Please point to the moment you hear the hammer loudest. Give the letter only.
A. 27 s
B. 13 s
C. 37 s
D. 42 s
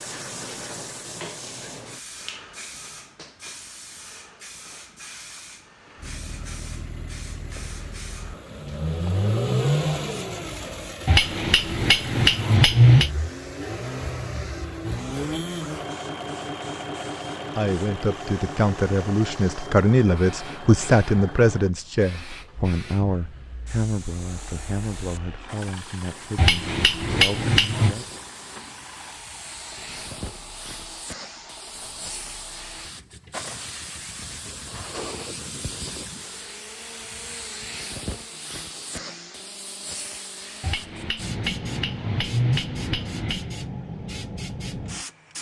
B.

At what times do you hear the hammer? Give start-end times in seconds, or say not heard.
11.1-13.1, 26.4-27.9, 40.6-43.5.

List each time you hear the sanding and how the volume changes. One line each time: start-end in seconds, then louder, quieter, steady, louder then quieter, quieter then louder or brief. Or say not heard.
not heard.